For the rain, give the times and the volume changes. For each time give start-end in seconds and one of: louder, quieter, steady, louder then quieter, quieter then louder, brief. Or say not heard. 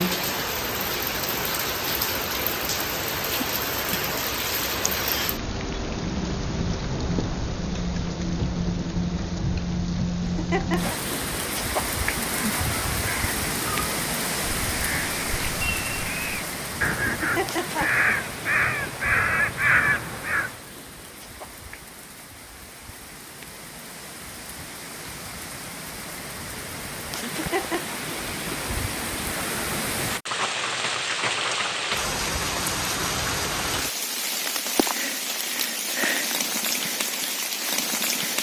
0.0-38.3 quieter then louder.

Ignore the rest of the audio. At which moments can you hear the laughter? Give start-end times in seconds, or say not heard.
10.2-10.9, 17.1-18.1, 27.2-28.0.